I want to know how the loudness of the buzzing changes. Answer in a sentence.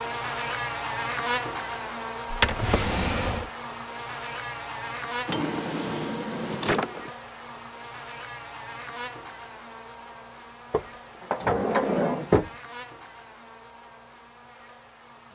The volume of the buzzing goes down.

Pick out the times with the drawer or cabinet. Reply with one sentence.
The drawer or cabinet can be heard from 2.3 to 3.5 s, from 5.2 to 7.1 s and from 10.7 to 12.5 s.